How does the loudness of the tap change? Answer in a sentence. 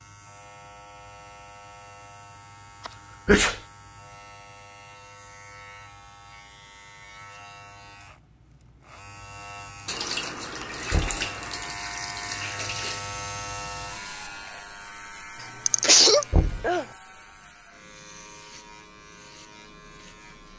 The loudness of the tap goes down.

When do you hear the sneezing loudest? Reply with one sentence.
The volume of the sneezing peaks at 16 seconds.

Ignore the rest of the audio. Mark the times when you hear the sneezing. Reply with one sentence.
You can hear the sneezing from 2.9 to 3.5 s and from 15.7 to 16.9 s.